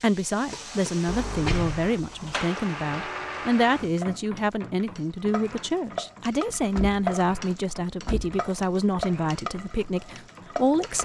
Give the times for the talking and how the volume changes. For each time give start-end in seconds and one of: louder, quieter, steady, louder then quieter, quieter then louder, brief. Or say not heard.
0.0-11.0 steady.